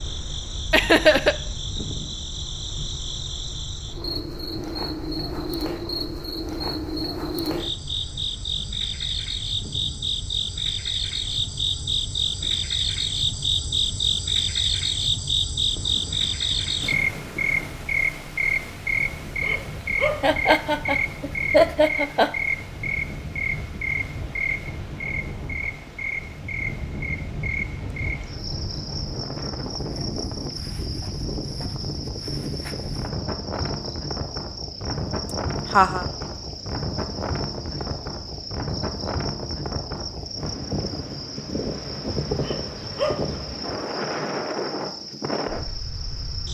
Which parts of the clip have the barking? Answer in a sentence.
The barking can be heard from 19.4 to 20.4 s and from 42.4 to 43.4 s.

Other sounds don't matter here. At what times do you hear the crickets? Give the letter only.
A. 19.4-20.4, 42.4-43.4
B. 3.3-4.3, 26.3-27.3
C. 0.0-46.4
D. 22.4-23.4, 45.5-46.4
C.